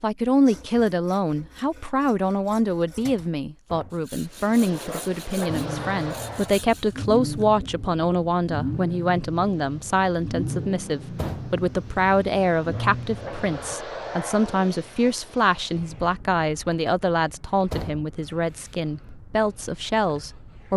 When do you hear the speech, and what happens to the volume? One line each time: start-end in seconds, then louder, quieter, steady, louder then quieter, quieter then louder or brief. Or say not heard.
0.0-20.7 steady.